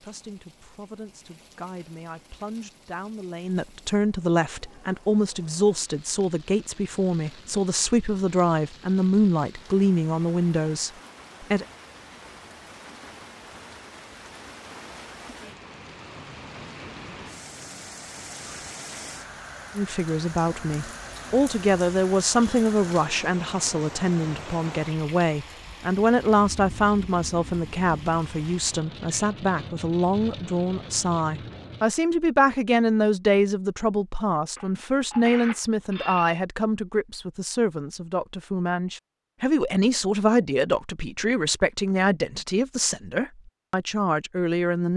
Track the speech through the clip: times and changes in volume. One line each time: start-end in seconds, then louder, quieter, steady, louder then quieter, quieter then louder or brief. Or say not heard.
0.0-11.7 louder
19.8-44.9 steady.